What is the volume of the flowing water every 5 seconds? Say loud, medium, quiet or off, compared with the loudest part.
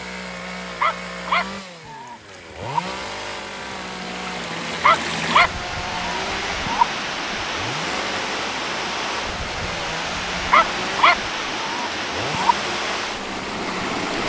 medium, loud, loud.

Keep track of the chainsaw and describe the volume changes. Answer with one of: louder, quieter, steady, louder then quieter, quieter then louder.
steady.